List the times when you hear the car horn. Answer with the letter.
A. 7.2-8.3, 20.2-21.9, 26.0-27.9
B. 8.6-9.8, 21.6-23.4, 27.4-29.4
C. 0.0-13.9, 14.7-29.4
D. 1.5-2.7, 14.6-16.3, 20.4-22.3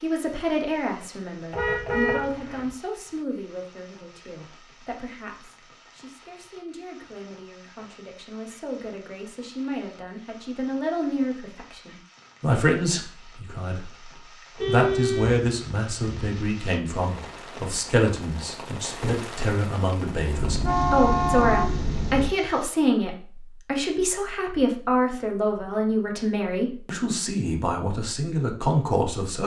D.